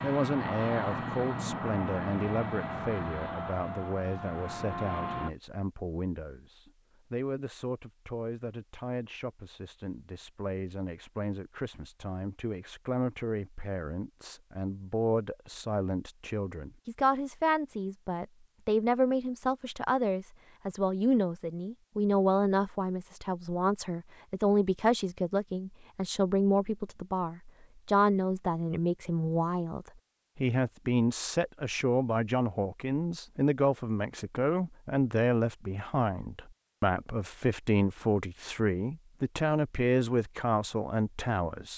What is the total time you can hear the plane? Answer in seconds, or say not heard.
5 s.